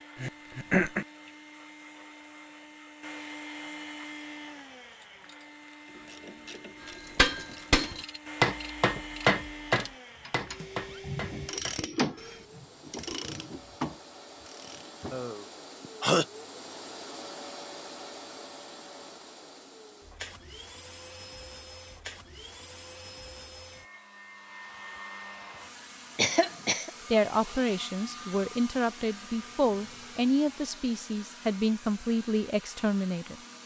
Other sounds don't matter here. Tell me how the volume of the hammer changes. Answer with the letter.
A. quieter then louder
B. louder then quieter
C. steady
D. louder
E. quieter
E.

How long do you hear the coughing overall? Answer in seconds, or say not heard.
3 s.